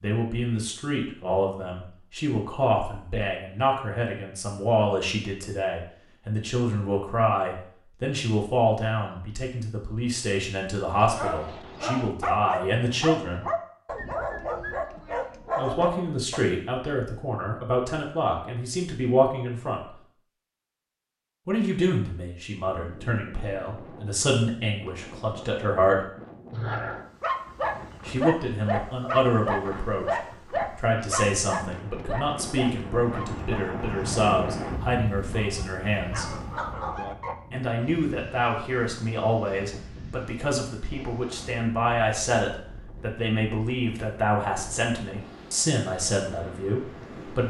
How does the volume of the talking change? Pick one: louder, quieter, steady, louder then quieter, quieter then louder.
steady.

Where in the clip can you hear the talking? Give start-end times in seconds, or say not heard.
0.0-13.4, 15.6-19.9, 21.4-26.1, 28.1-36.4, 37.5-47.4.